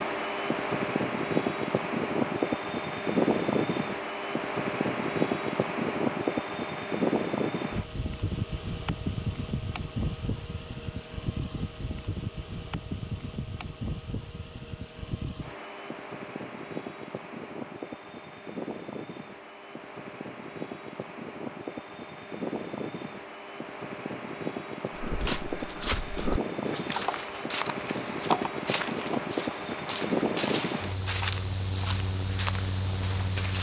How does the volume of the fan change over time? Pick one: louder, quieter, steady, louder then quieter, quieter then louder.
quieter then louder.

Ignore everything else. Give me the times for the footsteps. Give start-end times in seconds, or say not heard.
24.9-33.5.